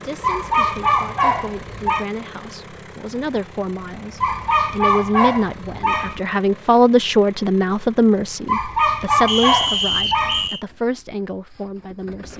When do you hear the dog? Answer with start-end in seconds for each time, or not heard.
0.2-2.0, 4.2-6.2, 8.4-10.5.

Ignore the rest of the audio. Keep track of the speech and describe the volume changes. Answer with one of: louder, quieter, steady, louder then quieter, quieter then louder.
louder then quieter.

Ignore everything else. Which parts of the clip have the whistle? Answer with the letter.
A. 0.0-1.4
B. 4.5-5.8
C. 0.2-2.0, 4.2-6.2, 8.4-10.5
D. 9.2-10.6
D.